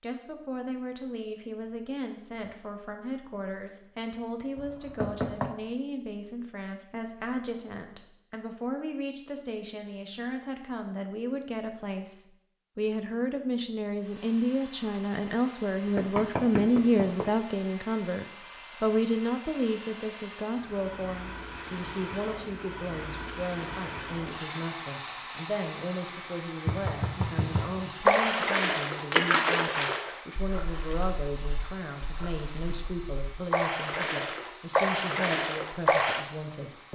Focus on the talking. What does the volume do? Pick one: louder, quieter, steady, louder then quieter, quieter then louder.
louder then quieter.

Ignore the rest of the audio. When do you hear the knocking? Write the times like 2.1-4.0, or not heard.
4.5-5.5, 15.9-17.2, 26.6-27.9.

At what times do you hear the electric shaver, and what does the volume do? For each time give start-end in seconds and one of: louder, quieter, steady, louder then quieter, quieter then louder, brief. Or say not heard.
not heard.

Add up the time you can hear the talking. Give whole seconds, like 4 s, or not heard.
37 s.